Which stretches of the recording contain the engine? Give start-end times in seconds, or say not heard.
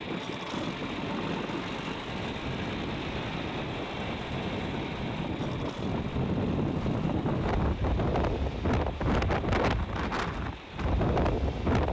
0.0-11.8.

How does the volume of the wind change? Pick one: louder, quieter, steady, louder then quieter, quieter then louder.
louder.